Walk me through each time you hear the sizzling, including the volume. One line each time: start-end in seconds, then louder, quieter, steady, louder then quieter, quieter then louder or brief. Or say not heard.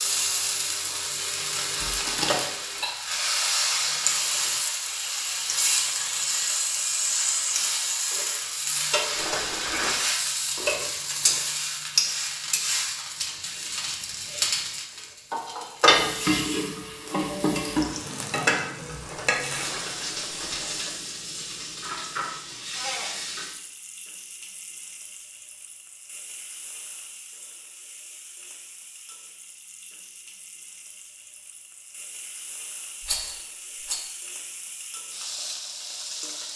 0.0-36.5 quieter.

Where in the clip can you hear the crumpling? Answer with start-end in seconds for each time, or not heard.
1.8-2.5.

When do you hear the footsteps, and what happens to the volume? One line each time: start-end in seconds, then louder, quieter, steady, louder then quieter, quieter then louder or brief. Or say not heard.
not heard.